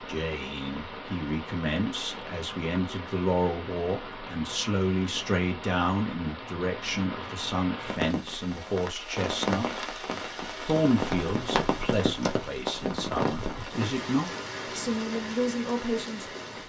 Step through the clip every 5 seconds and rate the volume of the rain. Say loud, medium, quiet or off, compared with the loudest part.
medium, loud, loud, medium.